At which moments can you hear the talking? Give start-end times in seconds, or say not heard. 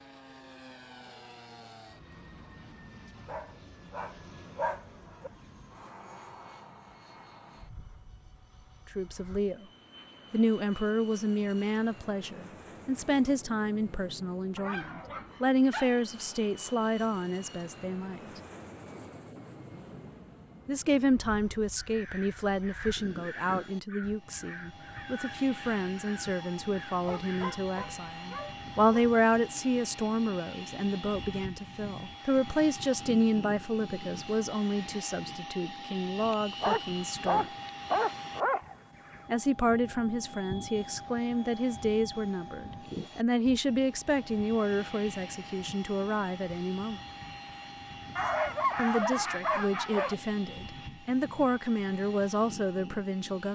8.9-9.7, 10.3-18.4, 20.6-37.5, 39.2-47.0, 48.8-53.5.